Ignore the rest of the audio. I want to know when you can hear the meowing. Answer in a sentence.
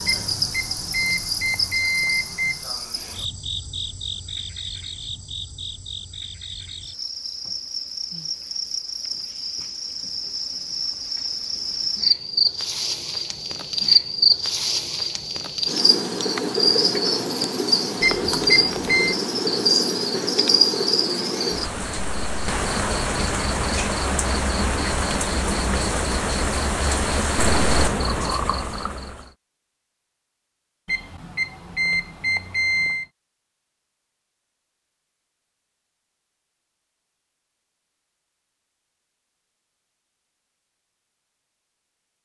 You can't hear the meowing here.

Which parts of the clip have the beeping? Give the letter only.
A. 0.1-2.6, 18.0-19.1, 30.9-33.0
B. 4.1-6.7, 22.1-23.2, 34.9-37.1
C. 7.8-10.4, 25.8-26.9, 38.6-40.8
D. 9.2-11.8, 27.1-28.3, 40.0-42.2
A.